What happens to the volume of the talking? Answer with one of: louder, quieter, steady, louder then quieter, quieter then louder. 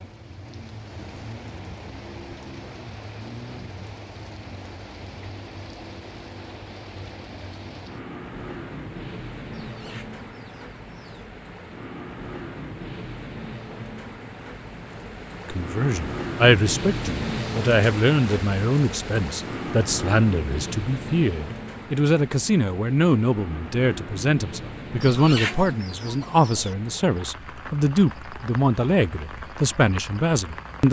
steady.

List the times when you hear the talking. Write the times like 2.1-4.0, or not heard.
15.4-30.8.